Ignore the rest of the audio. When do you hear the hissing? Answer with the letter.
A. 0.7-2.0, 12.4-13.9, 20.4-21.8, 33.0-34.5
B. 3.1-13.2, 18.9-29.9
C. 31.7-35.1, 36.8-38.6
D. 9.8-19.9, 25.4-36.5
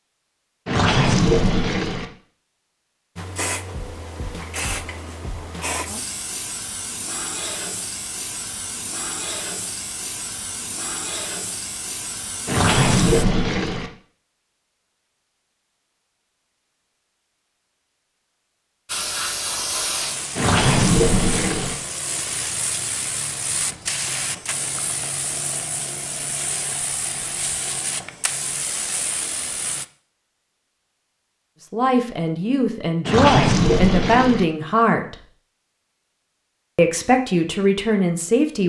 B.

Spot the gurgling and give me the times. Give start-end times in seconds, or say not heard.
0.7-2.0, 12.4-13.9, 20.4-21.8, 33.0-34.5.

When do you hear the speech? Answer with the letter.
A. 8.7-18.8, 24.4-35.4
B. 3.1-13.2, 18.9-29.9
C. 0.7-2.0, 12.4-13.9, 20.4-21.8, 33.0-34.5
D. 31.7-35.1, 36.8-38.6
D.